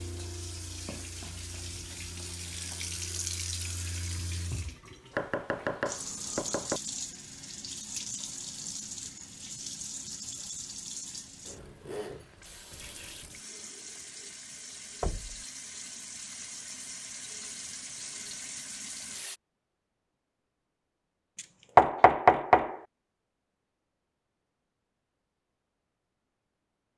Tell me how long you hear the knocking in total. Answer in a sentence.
The knocking can be heard for 3 seconds in total.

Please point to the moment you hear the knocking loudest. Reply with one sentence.
The loudest moment of the knocking is at 22 seconds.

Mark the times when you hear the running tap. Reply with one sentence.
The running tap can be heard from 0.0 to 19.4 s.